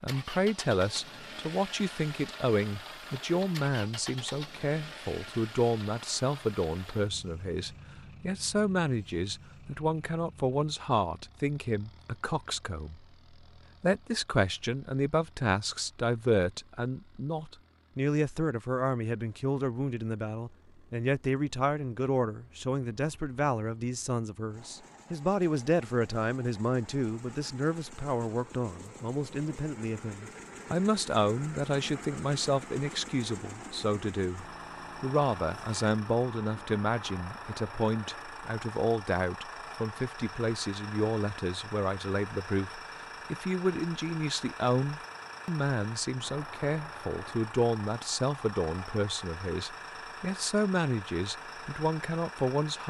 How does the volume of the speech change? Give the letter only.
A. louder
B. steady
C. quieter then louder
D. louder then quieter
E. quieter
B.